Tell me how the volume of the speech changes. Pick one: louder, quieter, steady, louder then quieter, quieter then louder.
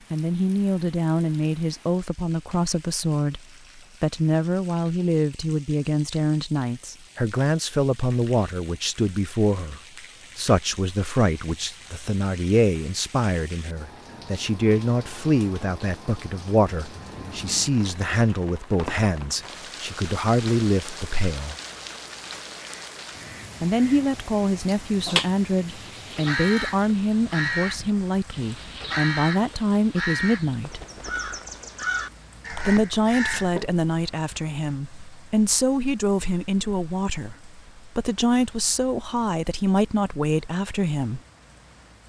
steady.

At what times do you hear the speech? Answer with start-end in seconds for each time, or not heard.
0.1-3.4, 4.0-21.6, 23.6-30.8, 32.6-41.2.